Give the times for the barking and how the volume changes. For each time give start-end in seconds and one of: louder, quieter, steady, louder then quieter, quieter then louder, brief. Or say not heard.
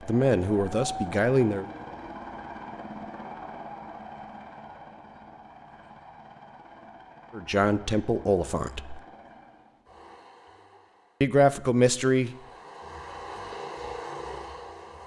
not heard.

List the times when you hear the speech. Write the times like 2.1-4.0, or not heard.
0.1-1.6, 7.3-9.0, 11.2-12.3.